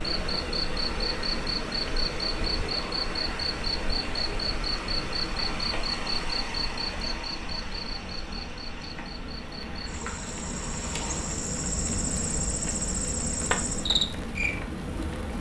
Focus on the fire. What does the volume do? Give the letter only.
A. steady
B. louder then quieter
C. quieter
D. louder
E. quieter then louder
D.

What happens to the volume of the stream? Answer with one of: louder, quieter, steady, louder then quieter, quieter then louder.
quieter.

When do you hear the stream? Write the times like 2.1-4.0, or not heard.
0.0-11.3.